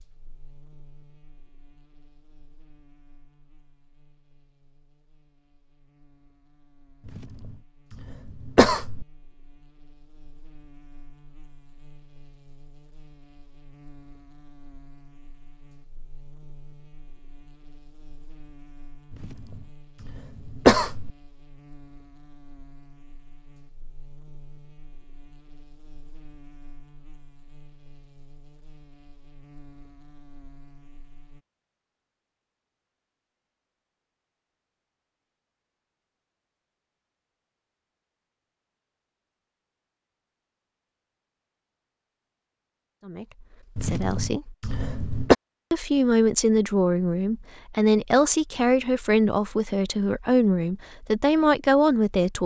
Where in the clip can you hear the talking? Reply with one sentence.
The talking can be heard from 43.0 to 44.5 s and from 45.7 to 52.4 s.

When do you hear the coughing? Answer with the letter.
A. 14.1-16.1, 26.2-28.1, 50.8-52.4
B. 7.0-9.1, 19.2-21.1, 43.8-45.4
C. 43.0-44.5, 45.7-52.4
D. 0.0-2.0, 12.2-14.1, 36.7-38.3
B.